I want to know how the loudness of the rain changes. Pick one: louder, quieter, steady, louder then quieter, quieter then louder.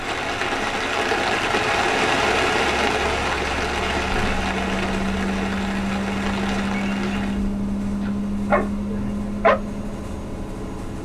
quieter.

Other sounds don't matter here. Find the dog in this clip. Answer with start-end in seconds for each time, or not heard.
8.0-9.6.